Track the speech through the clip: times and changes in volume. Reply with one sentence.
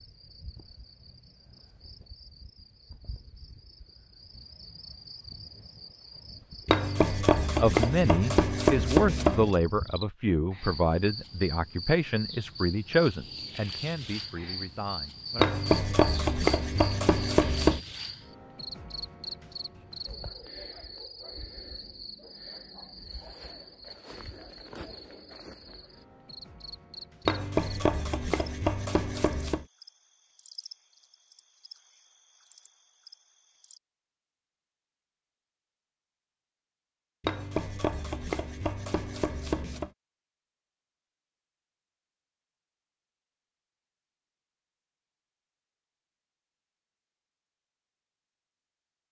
The speech can be heard from 7.5 to 15.6 s, getting quieter.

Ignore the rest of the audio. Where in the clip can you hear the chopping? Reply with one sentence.
The chopping can be heard from 6.7 to 9.6 s, from 15.3 to 17.8 s, from 27.2 to 29.6 s and from 37.2 to 39.9 s.